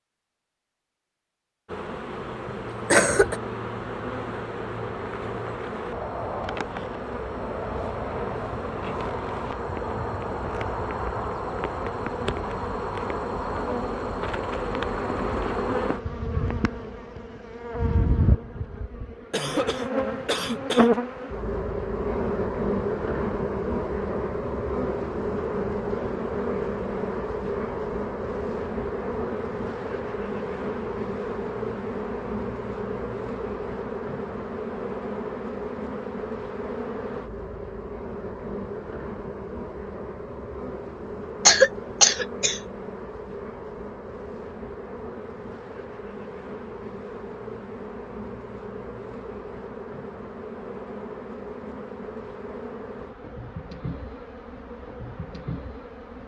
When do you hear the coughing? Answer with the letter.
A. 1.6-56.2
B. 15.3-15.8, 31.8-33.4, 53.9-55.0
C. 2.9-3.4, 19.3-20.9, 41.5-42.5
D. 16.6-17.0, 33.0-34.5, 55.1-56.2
C.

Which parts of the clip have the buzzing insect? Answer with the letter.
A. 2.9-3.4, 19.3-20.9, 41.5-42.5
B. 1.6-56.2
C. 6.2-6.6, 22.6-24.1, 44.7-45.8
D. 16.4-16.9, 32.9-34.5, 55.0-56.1
B.